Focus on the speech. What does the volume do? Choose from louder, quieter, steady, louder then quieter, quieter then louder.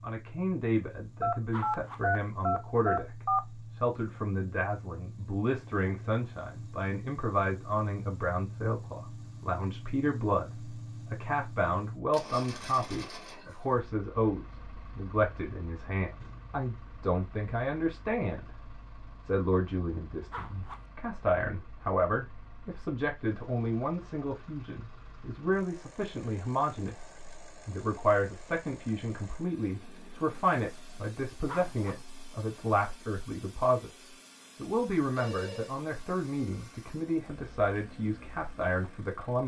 steady.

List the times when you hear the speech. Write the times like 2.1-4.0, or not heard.
0.0-18.5, 19.2-39.4.